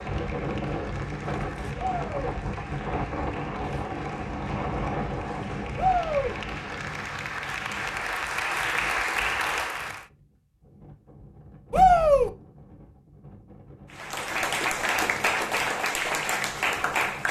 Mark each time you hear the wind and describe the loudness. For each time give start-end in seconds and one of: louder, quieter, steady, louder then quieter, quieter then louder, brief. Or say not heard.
0.0-17.2 quieter.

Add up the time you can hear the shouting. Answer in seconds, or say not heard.
2 s.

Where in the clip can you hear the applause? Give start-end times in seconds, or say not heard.
0.0-10.1, 13.9-17.2.